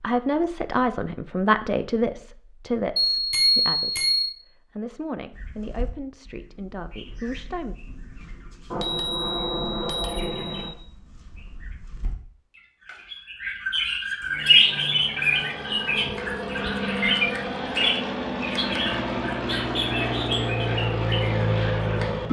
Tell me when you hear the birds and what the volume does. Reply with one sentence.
The birds can be heard from 5.3 to 22.1 s, getting louder then quieter.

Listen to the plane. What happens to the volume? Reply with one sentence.
The loudness of the plane goes up.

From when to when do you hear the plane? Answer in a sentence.
You can hear the plane from 14.2 to 22.2 s.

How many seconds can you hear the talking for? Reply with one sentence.
The talking can be heard for 8 seconds in total.